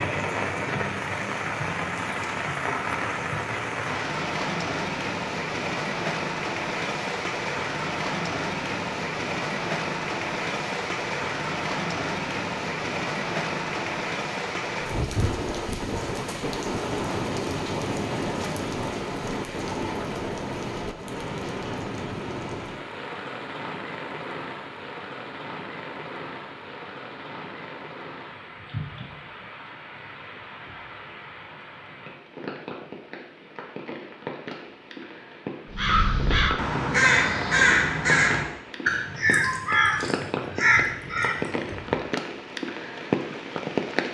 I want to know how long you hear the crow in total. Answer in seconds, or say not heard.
6 s.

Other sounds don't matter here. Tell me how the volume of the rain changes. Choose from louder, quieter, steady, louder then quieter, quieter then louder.
quieter then louder.